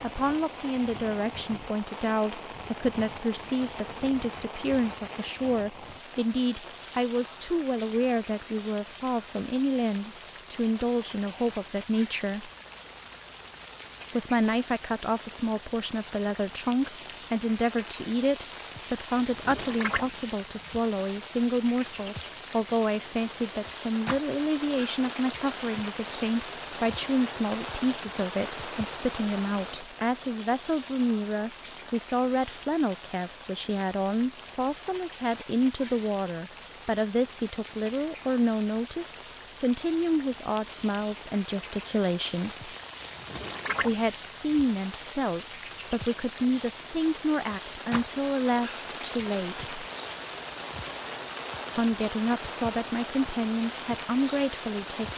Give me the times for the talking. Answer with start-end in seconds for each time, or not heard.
0.0-12.5, 14.1-42.7, 43.8-49.9, 51.8-55.1.